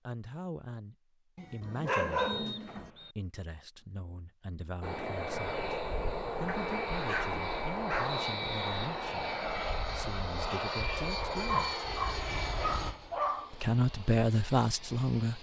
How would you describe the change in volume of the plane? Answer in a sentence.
The loudness of the plane goes down.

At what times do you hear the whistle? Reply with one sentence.
You can hear the whistle from 2.1 to 3.1 s and from 8.1 to 8.8 s.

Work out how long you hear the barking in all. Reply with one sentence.
The barking can be heard for 5 seconds in total.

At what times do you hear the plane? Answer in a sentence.
You can hear the plane from 4.8 to 15.3 s.